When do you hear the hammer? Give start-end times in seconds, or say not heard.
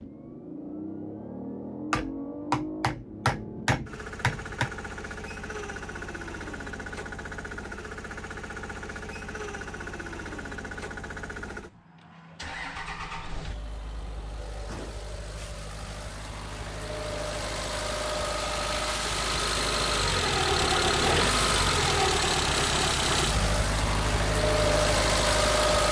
1.9-4.7.